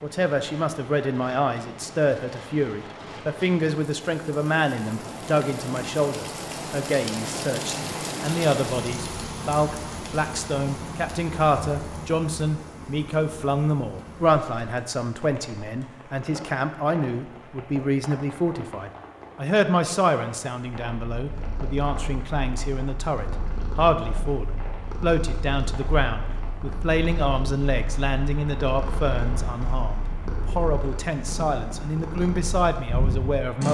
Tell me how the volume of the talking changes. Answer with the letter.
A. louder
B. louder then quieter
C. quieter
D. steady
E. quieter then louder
D.